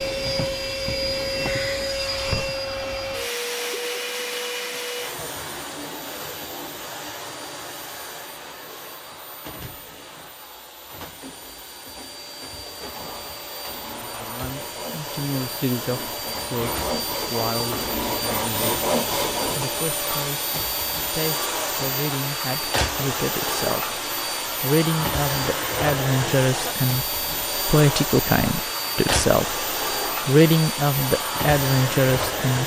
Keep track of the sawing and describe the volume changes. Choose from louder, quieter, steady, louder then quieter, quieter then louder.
louder.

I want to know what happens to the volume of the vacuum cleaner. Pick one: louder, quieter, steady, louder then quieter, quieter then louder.
quieter then louder.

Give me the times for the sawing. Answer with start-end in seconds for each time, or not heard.
12.9-19.6.